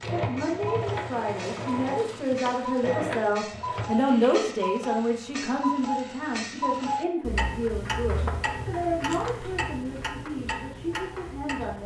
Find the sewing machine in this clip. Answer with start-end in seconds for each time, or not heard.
0.0-4.5.